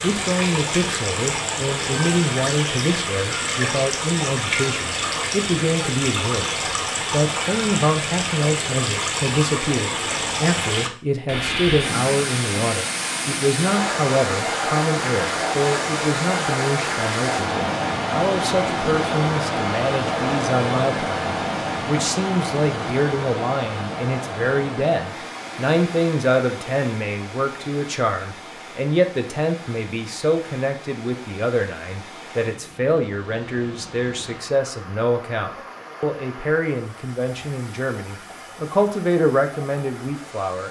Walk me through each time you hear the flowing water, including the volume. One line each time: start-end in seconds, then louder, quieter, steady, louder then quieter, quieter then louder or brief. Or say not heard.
0.0-40.6 quieter.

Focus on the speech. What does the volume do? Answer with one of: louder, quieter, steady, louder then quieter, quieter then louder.
steady.